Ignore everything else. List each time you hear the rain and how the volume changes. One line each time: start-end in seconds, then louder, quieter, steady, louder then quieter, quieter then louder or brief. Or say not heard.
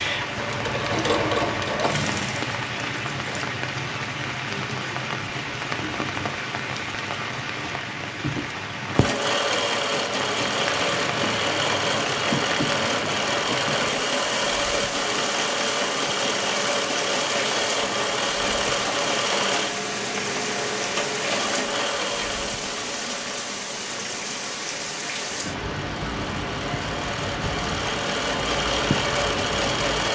0.0-30.1 steady.